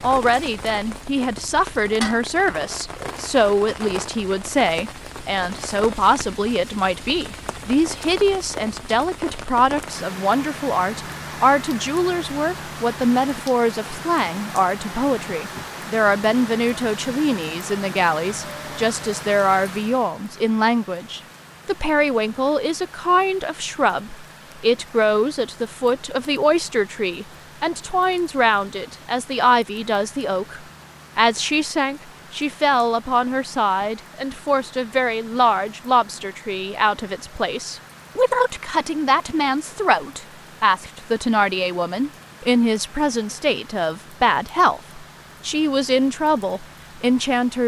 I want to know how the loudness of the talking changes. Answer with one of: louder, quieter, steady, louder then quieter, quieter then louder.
steady.